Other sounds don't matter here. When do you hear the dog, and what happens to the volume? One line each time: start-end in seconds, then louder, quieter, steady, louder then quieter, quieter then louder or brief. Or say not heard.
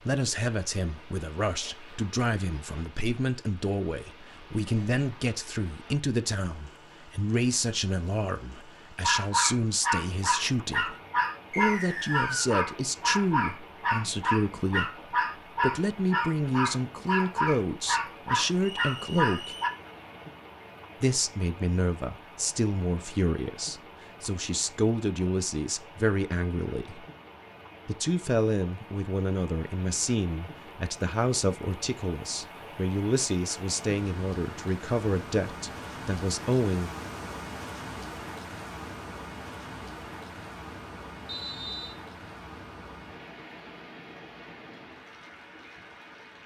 9.0-19.7 steady.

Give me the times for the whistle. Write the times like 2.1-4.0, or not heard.
11.5-12.6, 18.6-19.8, 41.2-42.0.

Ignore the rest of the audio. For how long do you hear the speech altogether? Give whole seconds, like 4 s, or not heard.
35 s.